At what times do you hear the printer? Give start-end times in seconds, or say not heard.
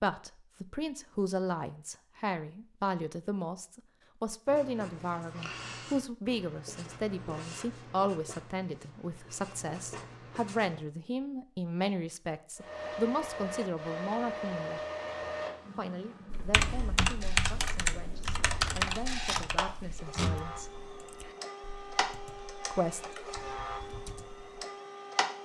12.6-25.3.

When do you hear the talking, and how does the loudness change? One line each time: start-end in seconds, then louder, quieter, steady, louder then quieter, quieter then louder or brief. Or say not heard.
0.0-14.8 steady
15.8-20.8 quieter then louder
22.7-23.1 brief.